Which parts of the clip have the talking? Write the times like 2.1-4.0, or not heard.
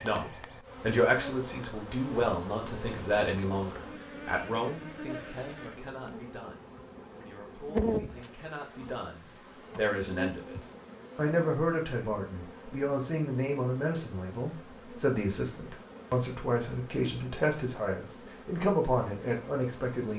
0.0-10.6, 11.2-20.1.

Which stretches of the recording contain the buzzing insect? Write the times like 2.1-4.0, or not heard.
0.0-20.1.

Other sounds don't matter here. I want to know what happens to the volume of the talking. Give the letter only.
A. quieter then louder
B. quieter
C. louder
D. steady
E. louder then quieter
A.